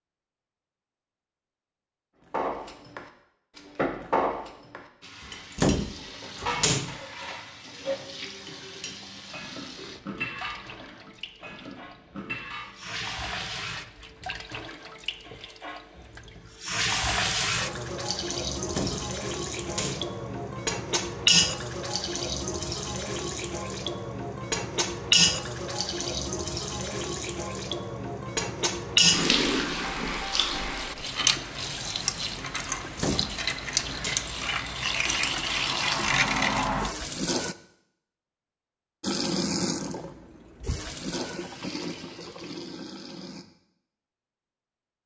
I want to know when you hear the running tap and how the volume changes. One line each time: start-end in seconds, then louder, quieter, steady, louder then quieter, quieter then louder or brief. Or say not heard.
5.0-37.5 louder
39.0-43.5 quieter.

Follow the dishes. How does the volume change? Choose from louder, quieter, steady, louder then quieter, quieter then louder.
quieter.